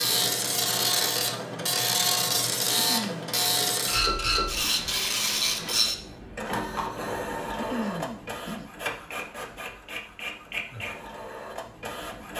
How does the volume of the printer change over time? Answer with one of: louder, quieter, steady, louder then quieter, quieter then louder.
quieter.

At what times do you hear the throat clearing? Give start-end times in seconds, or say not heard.
2.8-3.2, 7.5-8.7.